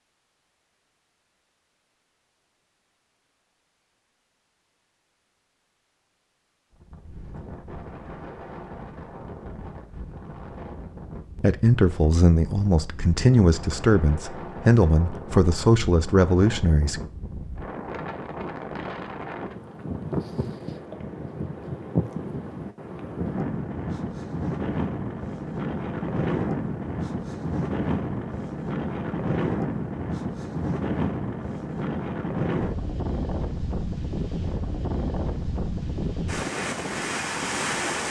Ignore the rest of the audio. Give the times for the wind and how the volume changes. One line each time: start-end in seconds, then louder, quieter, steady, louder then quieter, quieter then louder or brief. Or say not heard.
6.7-38.0 louder.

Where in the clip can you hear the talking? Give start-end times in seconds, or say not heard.
11.4-17.0.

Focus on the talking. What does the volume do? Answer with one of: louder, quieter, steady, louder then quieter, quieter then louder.
steady.